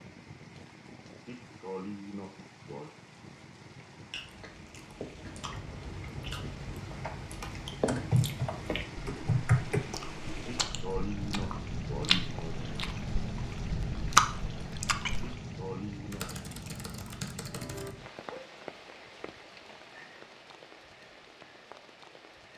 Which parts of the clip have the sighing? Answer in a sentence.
You can hear the sighing from 1.2 to 2.9 s, from 10.4 to 12.7 s and from 15.2 to 16.2 s.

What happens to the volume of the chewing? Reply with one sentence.
The loudness of the chewing goes up.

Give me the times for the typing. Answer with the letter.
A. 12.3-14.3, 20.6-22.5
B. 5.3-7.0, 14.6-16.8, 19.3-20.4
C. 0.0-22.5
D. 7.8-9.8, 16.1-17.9
D.